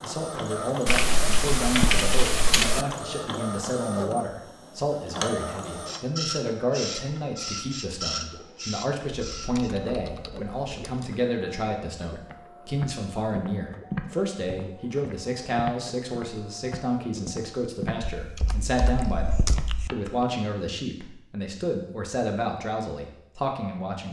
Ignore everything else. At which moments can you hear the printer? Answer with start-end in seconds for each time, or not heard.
0.0-17.4.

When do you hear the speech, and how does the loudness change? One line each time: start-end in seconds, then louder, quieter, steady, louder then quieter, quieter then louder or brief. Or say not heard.
0.0-24.0 steady.